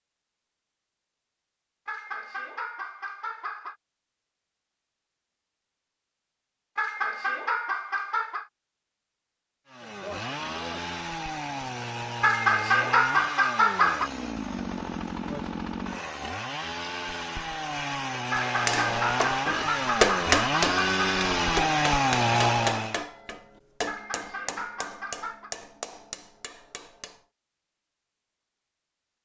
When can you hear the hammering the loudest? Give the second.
20 s.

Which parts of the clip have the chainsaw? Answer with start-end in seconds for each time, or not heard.
9.7-23.0.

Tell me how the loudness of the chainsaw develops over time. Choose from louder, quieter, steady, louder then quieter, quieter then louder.
louder.